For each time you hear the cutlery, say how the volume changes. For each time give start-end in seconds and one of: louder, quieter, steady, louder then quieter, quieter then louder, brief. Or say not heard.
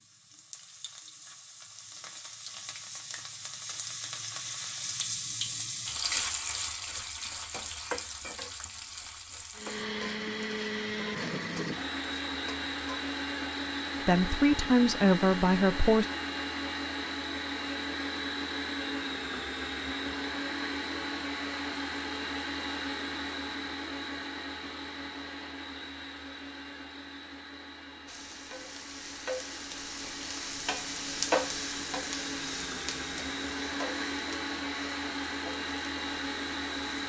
not heard.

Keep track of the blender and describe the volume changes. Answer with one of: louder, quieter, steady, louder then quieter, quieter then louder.
quieter then louder.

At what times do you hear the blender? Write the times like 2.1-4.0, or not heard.
9.6-37.0.